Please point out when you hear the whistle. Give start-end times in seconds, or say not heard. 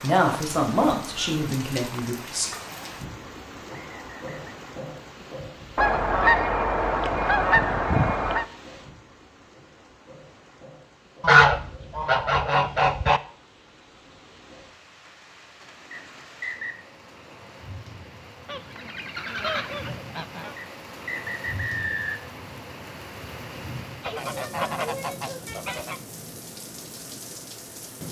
3.7-4.5, 15.9-16.9, 20.6-22.3.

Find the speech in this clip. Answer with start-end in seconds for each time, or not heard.
0.0-2.5.